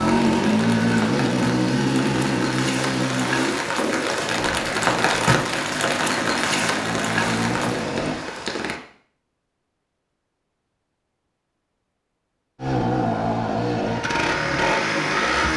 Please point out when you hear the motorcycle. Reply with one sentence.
The motorcycle can be heard from 0.0 to 8.2 s and from 12.6 to 15.5 s.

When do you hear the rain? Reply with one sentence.
You can hear the rain from 0.0 to 8.8 s.